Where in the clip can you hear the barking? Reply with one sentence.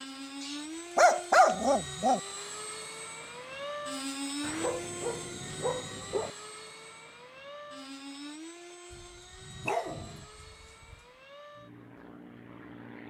The barking can be heard from 0.4 to 2.2 s, from 4.4 to 6.3 s and from 8.9 to 10.9 s.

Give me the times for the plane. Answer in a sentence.
You can hear the plane from 0.0 to 13.0 s.